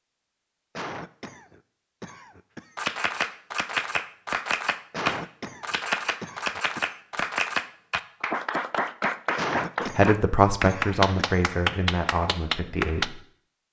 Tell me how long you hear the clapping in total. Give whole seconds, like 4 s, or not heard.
10 s.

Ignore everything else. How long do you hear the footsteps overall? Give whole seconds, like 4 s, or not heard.
not heard.